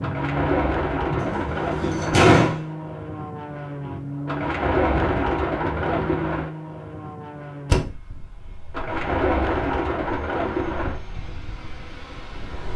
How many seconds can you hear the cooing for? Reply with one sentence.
The cooing can be heard for 7 seconds in total.